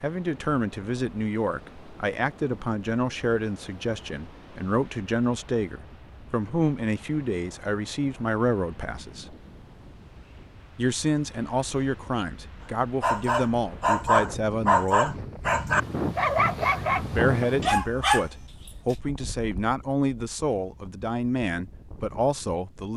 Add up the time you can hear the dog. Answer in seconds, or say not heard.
6 s.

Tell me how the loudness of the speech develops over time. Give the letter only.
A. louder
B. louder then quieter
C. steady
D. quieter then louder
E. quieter
C.